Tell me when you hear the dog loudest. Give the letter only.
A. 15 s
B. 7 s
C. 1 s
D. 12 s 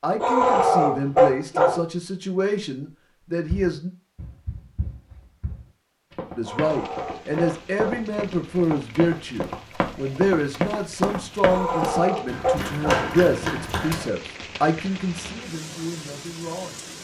C.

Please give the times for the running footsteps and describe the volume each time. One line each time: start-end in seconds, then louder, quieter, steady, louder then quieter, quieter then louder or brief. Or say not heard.
3.5-14.1 louder.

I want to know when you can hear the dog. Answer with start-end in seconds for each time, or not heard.
0.2-1.8, 6.4-8.1, 11.4-13.1.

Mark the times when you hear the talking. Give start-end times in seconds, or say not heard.
0.0-3.9, 6.3-16.8.